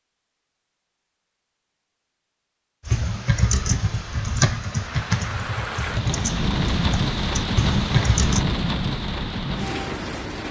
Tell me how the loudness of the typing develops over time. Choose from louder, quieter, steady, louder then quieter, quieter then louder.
quieter then louder.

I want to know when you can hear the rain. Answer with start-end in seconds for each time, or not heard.
4.7-10.4.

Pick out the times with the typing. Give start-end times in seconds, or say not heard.
2.9-8.4.